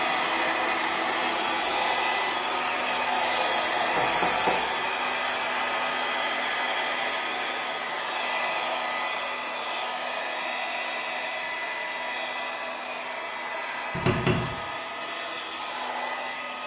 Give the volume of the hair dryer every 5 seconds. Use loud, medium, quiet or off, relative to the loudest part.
loud, loud, medium, medium.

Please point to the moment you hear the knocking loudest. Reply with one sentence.
The loudest moment of the knocking is at 14 seconds.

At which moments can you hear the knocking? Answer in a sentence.
The knocking can be heard from 4.0 to 4.7 s and from 13.9 to 14.6 s.